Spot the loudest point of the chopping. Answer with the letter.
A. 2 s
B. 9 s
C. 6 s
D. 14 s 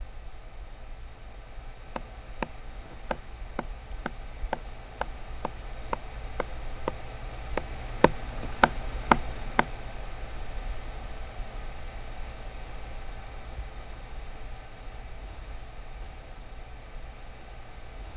B.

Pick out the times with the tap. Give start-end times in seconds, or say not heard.
not heard.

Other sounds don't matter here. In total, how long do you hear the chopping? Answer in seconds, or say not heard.
8 s.